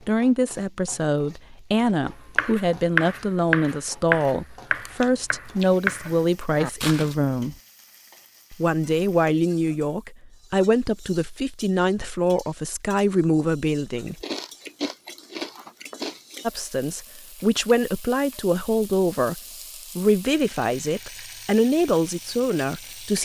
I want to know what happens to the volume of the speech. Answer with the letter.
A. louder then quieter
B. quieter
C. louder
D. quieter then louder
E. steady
E.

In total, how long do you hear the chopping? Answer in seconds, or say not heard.
5 s.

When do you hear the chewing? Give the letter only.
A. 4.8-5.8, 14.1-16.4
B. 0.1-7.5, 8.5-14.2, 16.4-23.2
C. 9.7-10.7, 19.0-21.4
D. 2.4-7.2
A.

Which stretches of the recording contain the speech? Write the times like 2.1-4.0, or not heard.
0.1-7.5, 8.5-14.2, 16.4-23.2.